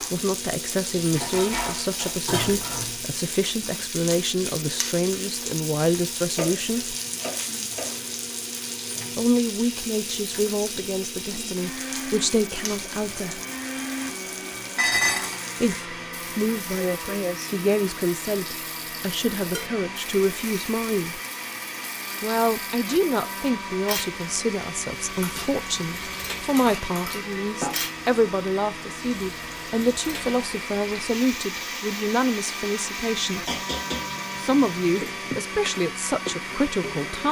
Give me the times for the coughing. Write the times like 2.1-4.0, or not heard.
not heard.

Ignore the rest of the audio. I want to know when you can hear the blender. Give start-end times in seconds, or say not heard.
0.0-37.2.